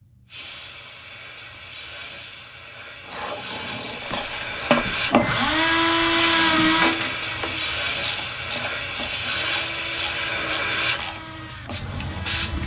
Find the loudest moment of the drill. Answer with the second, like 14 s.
6 s.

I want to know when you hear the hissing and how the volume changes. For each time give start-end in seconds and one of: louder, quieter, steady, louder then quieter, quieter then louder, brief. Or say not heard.
0.0-12.6 louder.